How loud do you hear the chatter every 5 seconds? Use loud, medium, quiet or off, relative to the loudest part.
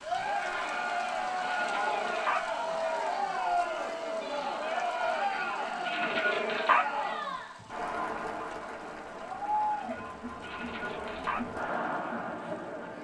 loud, loud, medium.